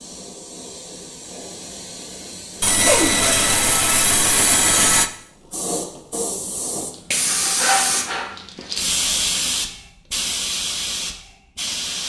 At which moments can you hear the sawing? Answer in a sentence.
The sawing can be heard from 2.6 to 5.1 s.